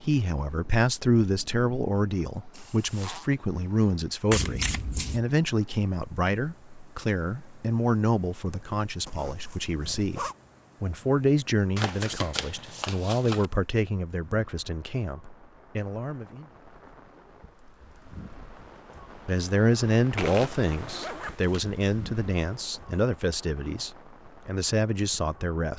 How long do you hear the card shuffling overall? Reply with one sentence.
You can hear the card shuffling for 4 seconds altogether.